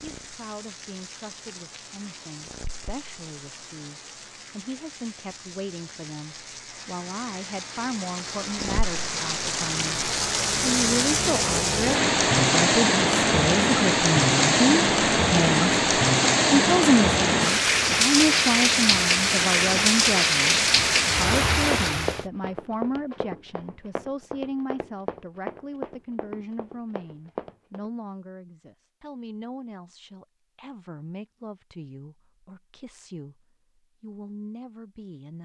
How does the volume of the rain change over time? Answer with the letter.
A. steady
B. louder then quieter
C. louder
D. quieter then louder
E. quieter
C.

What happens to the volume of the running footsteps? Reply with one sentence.
The volume of the running footsteps stays about the same.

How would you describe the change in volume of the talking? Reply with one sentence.
The volume of the talking goes up, then down.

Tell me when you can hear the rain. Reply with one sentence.
The rain can be heard from 0.0 to 22.2 s.